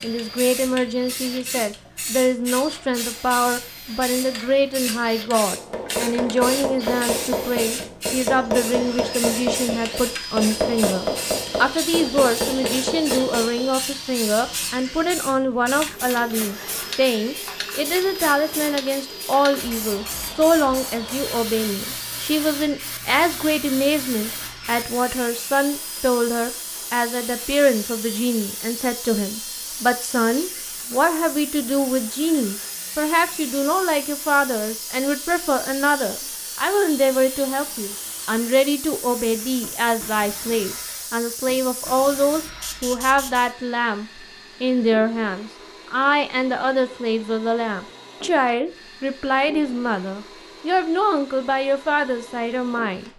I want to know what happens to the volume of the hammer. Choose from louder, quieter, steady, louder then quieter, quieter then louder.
steady.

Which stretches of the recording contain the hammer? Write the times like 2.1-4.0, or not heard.
5.5-13.7.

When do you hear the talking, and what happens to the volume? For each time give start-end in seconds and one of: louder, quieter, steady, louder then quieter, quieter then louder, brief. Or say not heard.
0.0-53.1 steady.